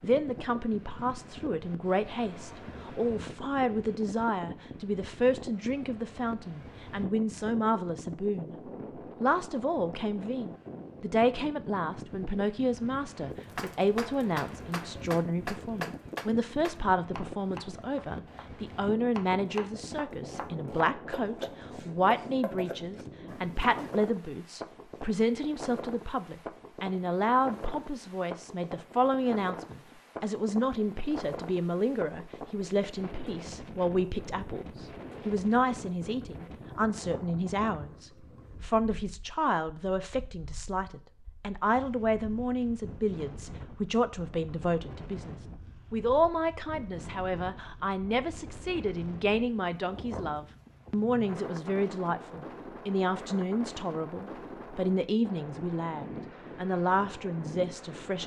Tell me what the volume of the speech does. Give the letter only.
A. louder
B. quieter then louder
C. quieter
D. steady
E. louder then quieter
D.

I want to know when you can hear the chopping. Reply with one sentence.
You can hear the chopping from 13.6 to 24.1 s.